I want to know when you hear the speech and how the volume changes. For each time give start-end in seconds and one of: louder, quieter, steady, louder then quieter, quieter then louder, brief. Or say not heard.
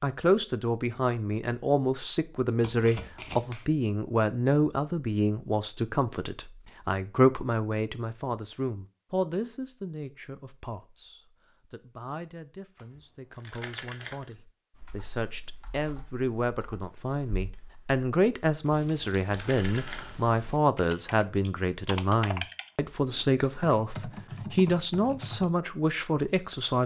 0.0-26.8 quieter then louder.